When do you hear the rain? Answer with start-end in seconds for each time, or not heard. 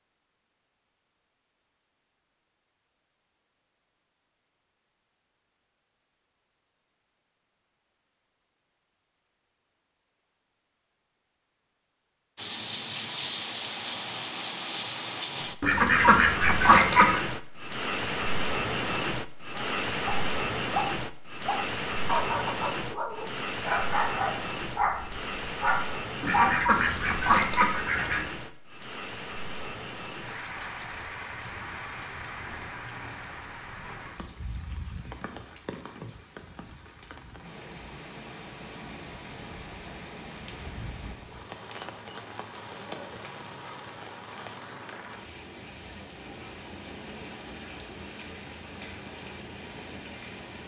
12.3-50.6.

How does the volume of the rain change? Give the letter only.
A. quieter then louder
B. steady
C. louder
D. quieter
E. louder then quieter
D.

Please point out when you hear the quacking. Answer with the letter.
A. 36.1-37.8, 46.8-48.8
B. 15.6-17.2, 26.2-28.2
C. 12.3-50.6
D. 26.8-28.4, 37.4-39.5
B.